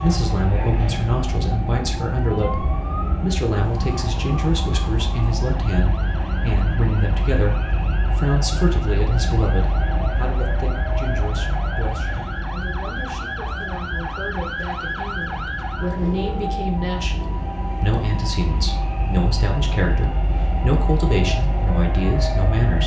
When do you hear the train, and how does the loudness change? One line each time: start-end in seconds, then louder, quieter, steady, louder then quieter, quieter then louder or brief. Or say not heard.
0.0-22.8 quieter then louder.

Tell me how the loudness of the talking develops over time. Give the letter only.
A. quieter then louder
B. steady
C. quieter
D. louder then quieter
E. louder
A.